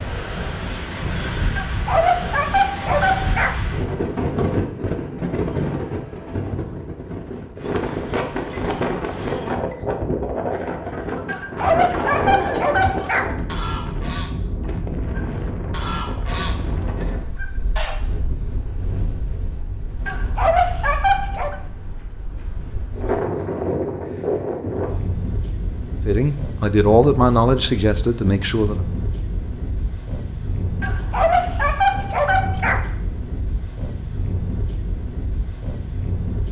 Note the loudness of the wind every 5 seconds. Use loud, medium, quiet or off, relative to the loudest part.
loud, loud, loud, medium, loud, medium, medium, medium.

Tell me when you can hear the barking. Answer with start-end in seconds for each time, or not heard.
1.6-3.5, 11.2-13.3, 20.1-21.6, 30.8-32.8.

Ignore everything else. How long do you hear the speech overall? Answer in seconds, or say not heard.
3 s.